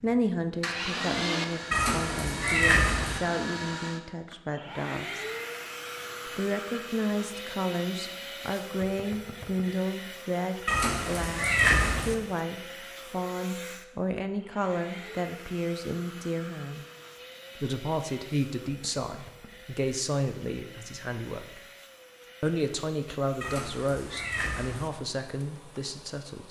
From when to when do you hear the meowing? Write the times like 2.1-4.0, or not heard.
1.7-3.2, 10.7-12.2, 23.4-24.9.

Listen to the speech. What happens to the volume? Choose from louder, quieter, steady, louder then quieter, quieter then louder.
steady.